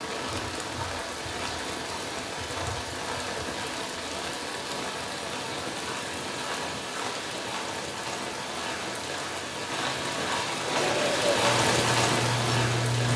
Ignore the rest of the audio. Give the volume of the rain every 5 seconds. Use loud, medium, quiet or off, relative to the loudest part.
medium, medium, loud.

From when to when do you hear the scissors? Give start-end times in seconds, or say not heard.
not heard.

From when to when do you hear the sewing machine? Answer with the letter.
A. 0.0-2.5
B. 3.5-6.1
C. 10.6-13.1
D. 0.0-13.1
C.